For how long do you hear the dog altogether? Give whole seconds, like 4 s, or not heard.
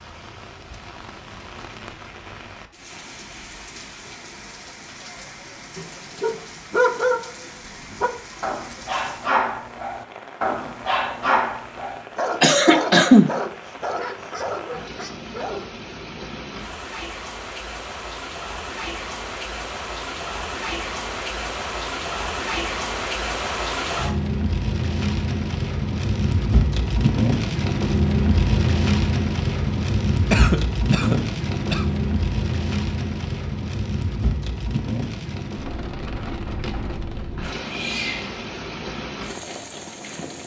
10 s.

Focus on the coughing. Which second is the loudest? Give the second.
13 s.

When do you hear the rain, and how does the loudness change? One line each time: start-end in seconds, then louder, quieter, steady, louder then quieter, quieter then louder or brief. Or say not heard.
0.0-40.4 louder then quieter.